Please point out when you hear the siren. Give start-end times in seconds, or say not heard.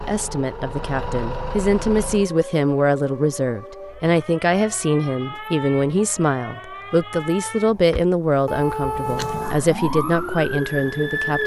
0.0-11.4.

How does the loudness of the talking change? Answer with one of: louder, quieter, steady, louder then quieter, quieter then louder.
steady.